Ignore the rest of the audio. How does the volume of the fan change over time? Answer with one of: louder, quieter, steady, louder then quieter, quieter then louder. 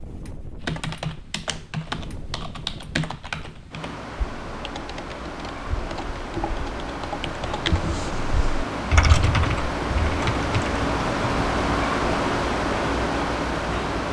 louder.